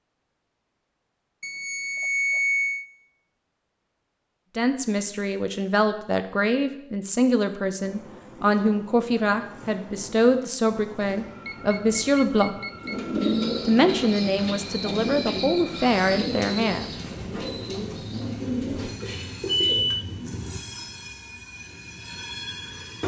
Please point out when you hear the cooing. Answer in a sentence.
You can hear the cooing from 12.8 to 19.9 s.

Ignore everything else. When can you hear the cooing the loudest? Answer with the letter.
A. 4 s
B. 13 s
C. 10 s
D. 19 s
B.